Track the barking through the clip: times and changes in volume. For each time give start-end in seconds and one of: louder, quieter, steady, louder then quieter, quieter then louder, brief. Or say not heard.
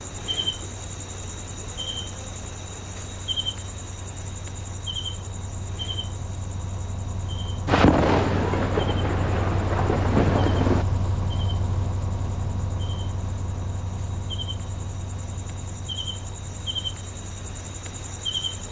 not heard.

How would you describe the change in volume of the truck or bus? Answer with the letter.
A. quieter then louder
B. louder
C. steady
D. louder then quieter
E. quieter
D.